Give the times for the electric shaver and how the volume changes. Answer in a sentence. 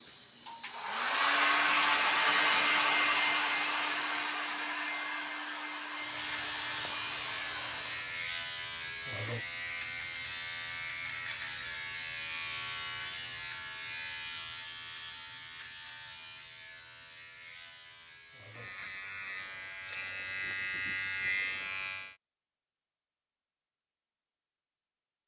The electric shaver can be heard from 6.0 to 22.1 s, getting quieter then louder.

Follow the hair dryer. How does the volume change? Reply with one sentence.
The volume of the hair dryer goes down.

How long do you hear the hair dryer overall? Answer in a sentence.
You can hear the hair dryer for 8 seconds altogether.